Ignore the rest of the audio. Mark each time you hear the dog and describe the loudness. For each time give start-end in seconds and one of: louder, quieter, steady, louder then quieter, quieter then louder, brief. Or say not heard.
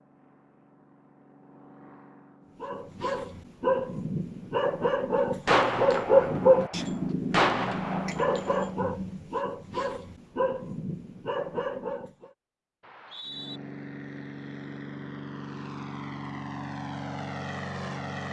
2.6-12.3 louder then quieter.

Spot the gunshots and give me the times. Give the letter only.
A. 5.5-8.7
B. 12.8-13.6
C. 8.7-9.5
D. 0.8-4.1
A.